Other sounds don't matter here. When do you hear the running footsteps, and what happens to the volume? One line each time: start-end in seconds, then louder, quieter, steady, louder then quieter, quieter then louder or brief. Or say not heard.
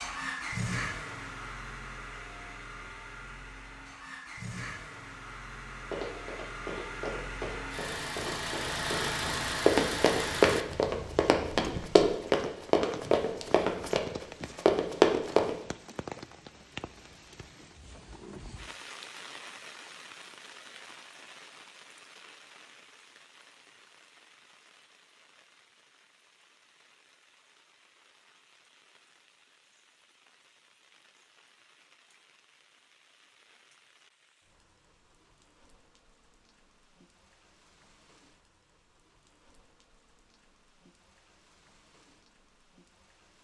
5.8-15.6 louder.